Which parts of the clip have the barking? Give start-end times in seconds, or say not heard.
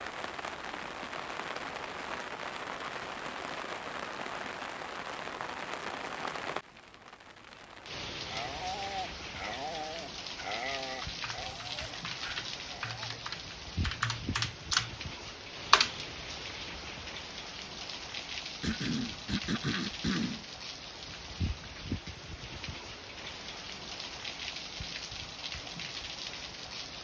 8.2-13.2.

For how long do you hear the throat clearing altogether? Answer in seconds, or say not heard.
2 s.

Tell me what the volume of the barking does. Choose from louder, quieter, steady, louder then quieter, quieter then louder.
quieter.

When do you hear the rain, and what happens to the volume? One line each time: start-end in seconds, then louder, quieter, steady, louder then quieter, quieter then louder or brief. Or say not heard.
0.0-27.0 steady.